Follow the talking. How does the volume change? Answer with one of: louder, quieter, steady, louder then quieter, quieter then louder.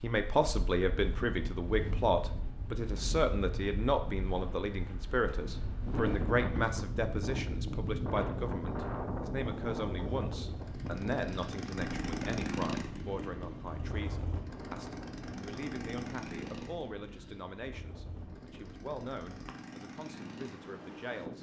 quieter.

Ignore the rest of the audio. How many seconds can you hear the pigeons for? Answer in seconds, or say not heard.
not heard.